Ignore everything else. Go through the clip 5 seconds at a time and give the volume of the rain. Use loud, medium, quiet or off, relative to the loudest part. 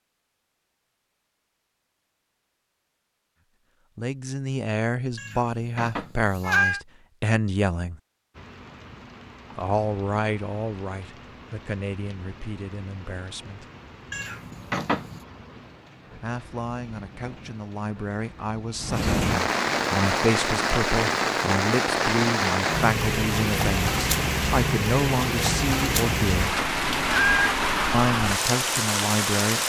off, quiet, quiet, medium, loud, loud.